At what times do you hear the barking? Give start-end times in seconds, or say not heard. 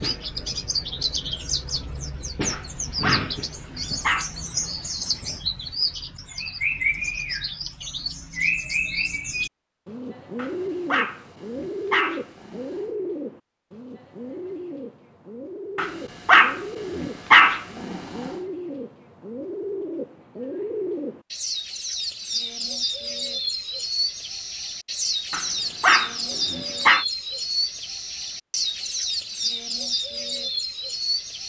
2.5-4.3, 10.3-12.8, 15.8-18.3, 25.3-27.1.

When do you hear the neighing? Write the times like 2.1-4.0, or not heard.
not heard.